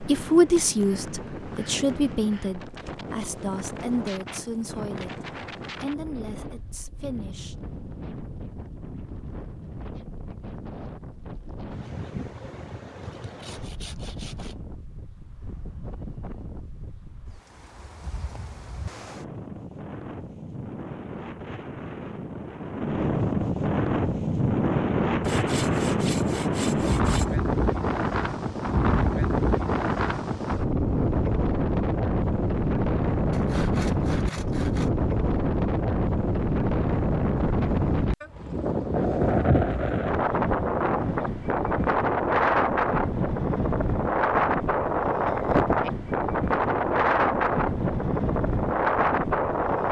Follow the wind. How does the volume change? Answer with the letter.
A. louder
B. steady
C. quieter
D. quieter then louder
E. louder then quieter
A.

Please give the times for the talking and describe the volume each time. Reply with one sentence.
The talking can be heard from 0.0 to 7.5 s, getting quieter.